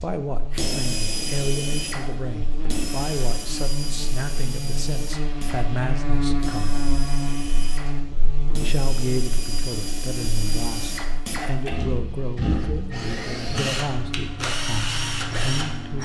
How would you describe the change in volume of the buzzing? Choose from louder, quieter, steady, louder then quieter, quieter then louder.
louder then quieter.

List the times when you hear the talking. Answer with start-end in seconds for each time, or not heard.
0.0-6.8, 8.6-16.0.